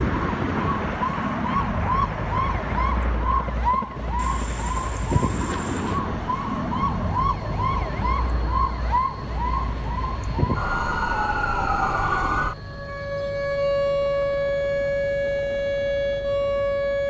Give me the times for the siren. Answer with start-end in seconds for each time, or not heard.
0.0-17.0.